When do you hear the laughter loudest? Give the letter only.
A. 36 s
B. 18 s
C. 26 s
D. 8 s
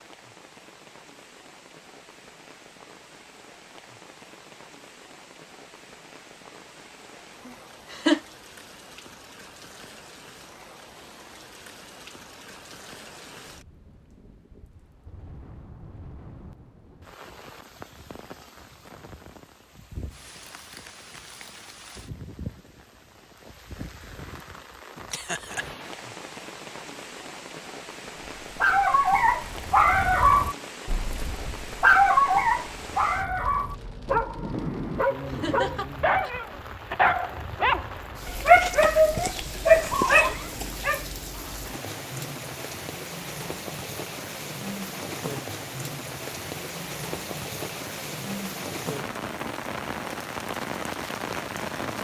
D.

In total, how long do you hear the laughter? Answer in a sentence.
You can hear the laughter for 2 seconds altogether.